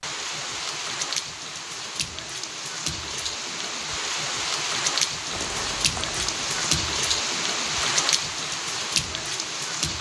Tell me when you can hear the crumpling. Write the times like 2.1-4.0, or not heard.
5.3-6.5.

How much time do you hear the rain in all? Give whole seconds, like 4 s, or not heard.
10 s.